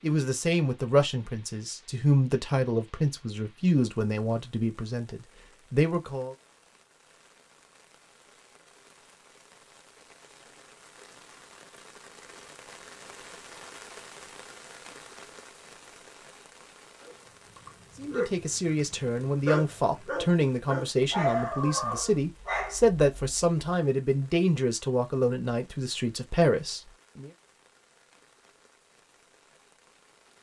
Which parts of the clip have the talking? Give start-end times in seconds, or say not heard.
0.0-6.3, 17.9-27.3.